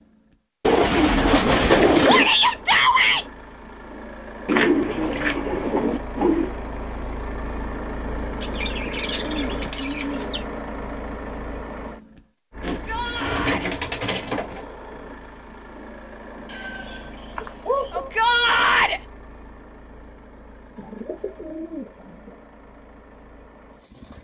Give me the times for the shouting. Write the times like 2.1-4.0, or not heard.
2.0-3.2, 12.7-13.7, 17.9-19.0.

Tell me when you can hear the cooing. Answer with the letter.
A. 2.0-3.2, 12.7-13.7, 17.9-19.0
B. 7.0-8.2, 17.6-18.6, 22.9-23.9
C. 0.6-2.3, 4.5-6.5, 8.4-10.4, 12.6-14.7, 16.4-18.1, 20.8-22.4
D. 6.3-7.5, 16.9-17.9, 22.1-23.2
C.